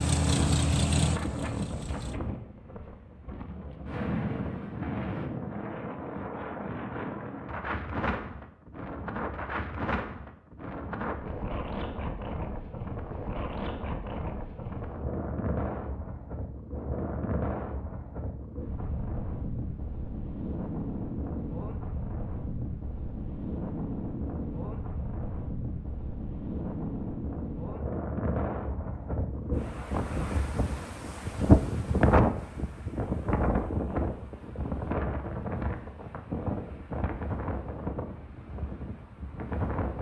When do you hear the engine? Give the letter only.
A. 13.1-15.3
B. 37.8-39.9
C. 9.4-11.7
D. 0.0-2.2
D.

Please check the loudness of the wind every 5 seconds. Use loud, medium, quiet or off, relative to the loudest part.
medium, medium, medium, medium, medium, medium, loud, medium.